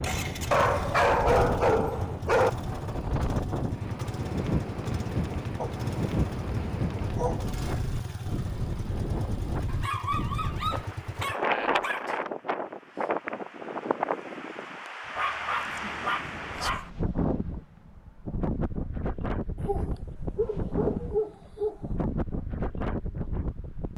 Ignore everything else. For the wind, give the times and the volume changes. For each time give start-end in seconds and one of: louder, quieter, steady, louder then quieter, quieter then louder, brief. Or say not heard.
0.0-23.9 steady.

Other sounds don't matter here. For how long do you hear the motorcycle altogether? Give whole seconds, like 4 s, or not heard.
11 s.